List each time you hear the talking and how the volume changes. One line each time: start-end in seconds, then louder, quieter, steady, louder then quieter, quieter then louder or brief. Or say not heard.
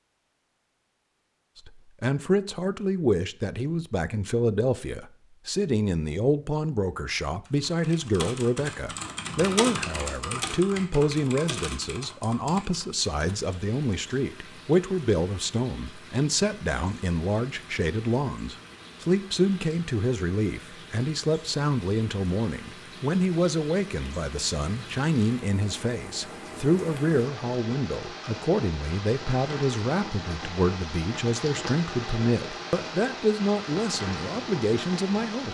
1.6-35.5 steady.